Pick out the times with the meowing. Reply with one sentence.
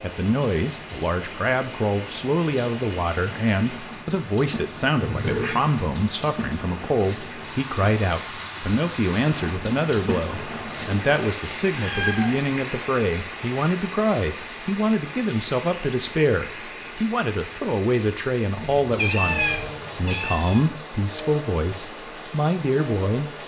The meowing can be heard from 5.0 to 5.6 s, from 11.8 to 12.4 s and from 18.6 to 20.6 s.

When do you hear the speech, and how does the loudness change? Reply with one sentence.
The speech can be heard from 0.0 to 23.3 s, at a steady volume.